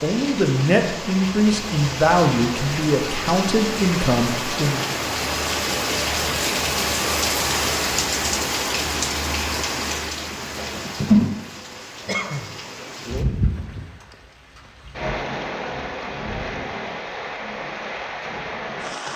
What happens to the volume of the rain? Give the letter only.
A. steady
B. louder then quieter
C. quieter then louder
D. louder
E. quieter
B.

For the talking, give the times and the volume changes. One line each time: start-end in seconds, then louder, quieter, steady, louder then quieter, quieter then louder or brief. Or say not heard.
0.0-4.8 steady.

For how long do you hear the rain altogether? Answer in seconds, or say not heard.
19 s.